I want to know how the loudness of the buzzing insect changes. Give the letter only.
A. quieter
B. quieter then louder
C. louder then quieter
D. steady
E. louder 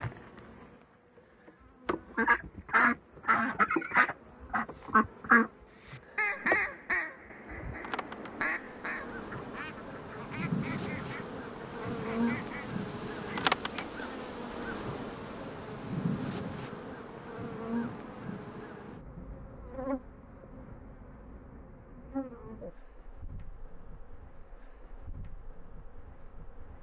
C.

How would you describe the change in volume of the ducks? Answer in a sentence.
The loudness of the ducks goes down.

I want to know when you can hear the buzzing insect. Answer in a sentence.
You can hear the buzzing insect from 0.0 to 26.7 s.